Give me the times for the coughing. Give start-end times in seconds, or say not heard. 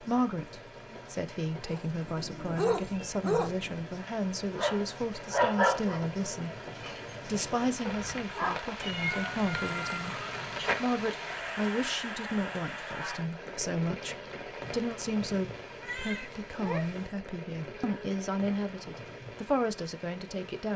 not heard.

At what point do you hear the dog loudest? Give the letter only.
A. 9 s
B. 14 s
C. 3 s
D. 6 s
D.